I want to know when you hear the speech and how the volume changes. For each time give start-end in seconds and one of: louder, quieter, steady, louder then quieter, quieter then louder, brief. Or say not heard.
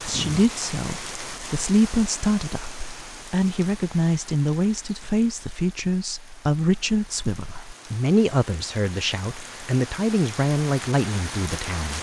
0.0-11.9 steady.